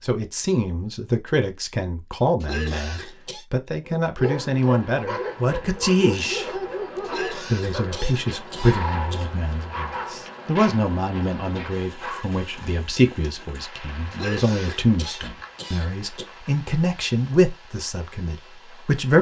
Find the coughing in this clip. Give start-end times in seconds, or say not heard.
2.4-3.5, 7.0-9.3, 14.1-16.2.